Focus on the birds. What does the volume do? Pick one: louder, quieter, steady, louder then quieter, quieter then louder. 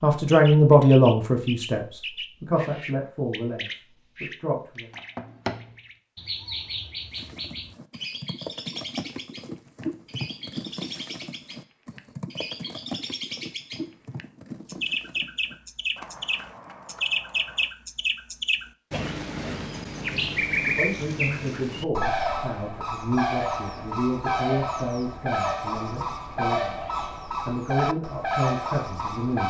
louder.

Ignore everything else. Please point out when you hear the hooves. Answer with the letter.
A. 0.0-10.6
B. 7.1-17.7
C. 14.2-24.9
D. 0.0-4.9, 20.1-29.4
B.